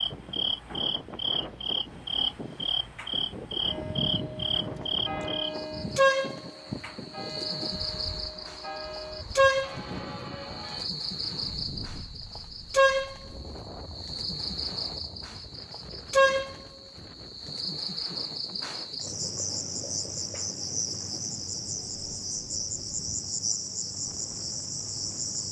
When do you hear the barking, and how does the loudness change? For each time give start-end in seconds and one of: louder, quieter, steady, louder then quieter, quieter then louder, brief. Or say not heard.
not heard.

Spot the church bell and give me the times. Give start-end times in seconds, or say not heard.
3.6-10.9.